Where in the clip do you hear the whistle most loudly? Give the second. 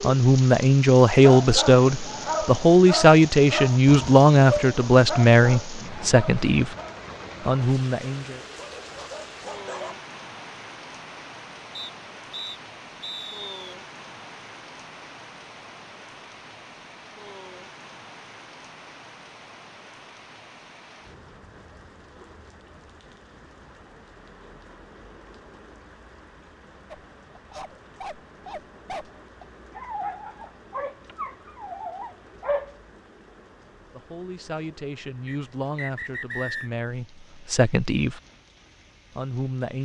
36 s.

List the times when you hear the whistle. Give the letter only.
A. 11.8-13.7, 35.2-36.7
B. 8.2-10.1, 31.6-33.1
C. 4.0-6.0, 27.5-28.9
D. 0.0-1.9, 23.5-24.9
A.